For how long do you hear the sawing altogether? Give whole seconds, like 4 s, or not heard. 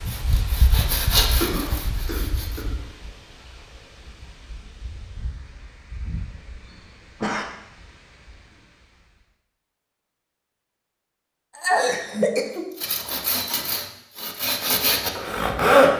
6 s.